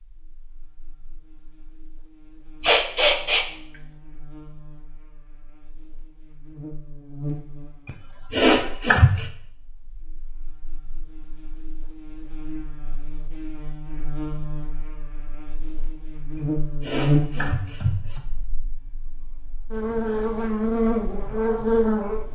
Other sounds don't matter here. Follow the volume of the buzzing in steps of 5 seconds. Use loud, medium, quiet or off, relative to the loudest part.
quiet, quiet, quiet, medium, loud.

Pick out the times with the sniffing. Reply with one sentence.
You can hear the sniffing from 2.6 to 3.9 s, from 7.8 to 9.3 s and from 16.4 to 18.2 s.